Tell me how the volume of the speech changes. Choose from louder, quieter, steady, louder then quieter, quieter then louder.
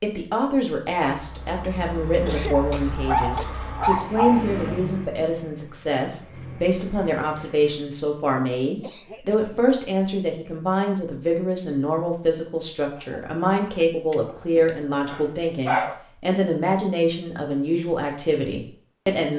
steady.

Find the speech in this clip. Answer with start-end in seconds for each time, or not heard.
0.0-19.3.